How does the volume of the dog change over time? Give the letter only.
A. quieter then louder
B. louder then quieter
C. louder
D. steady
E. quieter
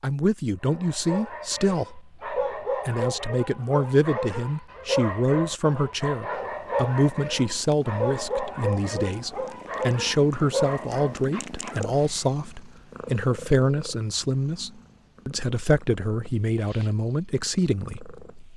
D.